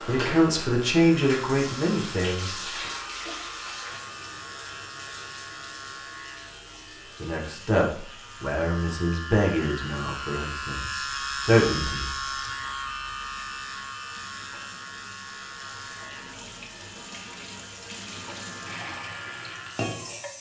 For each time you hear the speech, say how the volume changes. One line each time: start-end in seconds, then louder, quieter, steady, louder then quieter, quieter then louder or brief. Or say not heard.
0.1-2.9 brief
7.2-12.1 quieter then louder.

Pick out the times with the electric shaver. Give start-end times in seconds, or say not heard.
0.0-20.3.